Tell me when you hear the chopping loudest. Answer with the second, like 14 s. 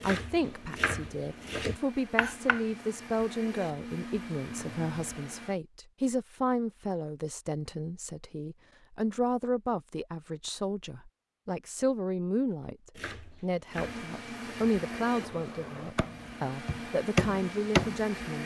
18 s.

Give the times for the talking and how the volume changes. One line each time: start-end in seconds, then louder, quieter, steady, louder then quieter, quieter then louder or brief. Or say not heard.
0.0-18.4 steady.